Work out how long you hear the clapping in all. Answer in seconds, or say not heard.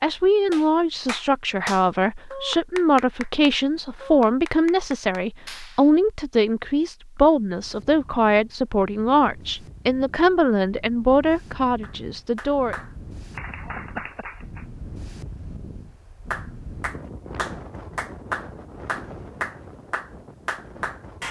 13 s.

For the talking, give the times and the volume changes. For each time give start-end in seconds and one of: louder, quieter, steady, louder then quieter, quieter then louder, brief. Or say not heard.
0.0-12.8 steady.